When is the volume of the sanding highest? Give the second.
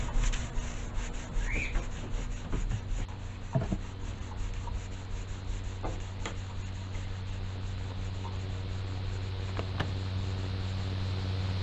4 s.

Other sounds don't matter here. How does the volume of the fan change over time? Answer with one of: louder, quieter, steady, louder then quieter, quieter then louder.
louder.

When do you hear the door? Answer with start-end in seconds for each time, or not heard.
9.4-10.1.